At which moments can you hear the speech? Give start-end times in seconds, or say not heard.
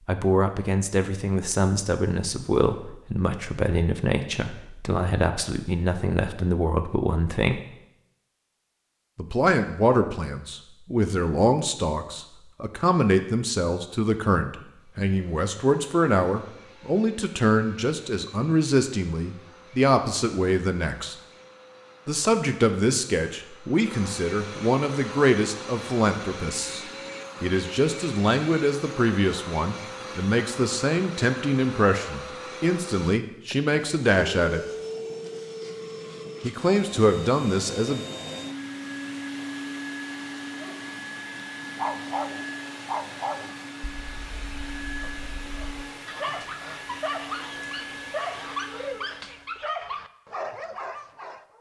0.1-7.6, 9.2-21.1, 22.1-34.6, 36.4-38.0.